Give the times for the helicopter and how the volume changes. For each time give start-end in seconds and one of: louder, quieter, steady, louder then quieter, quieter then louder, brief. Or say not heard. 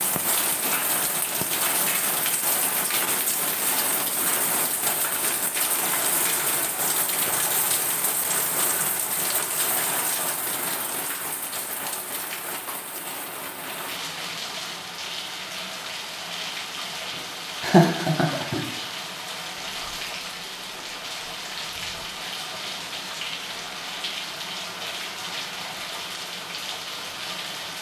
not heard.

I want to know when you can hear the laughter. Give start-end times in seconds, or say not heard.
17.6-18.7.